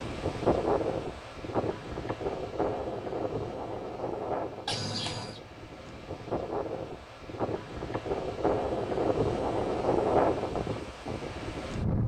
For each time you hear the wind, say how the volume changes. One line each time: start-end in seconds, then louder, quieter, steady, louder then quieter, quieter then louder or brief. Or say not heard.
0.0-12.0 quieter then louder.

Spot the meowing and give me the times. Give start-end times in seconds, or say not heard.
4.7-5.4.